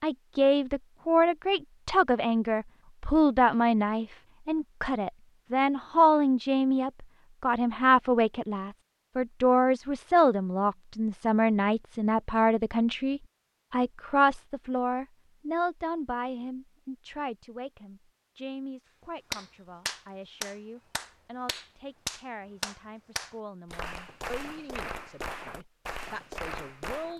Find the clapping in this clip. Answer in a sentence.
You can hear the clapping from 19.3 to 27.1 s.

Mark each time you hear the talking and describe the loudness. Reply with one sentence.
The talking can be heard from 0.0 to 27.1 s, getting quieter.